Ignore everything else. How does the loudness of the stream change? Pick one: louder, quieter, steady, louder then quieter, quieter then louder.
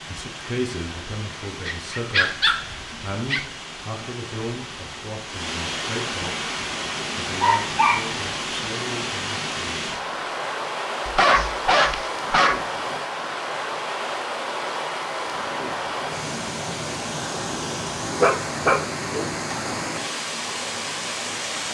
louder.